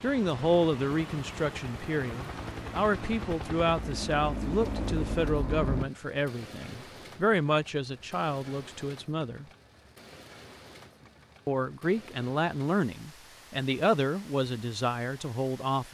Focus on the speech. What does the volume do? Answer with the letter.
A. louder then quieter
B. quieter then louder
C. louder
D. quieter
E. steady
E.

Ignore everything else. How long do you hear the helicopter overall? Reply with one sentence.
You can hear the helicopter for 6 seconds altogether.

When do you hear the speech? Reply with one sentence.
The speech can be heard from 0.0 to 9.4 s and from 11.4 to 15.8 s.